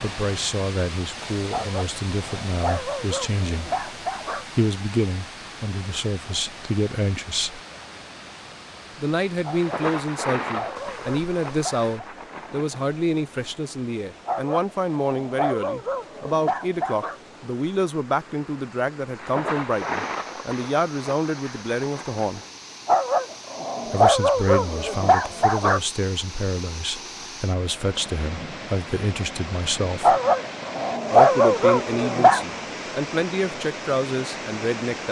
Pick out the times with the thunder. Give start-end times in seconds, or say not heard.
9.6-12.8, 19.1-22.5.